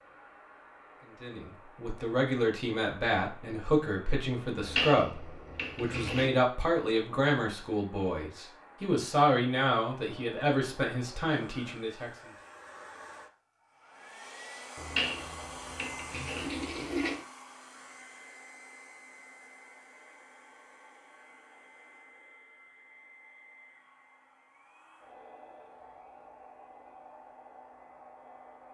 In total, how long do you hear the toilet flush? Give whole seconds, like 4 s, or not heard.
4 s.